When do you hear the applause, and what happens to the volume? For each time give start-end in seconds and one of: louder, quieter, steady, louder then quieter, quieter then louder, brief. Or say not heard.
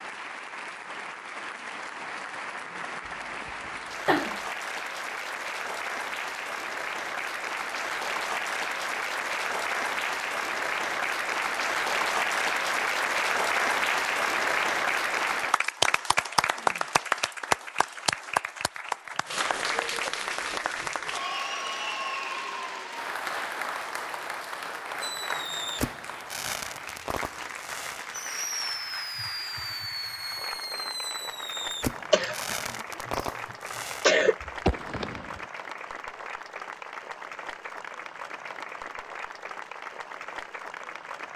0.0-41.3 louder then quieter.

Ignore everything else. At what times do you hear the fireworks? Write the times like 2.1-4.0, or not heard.
25.0-35.5.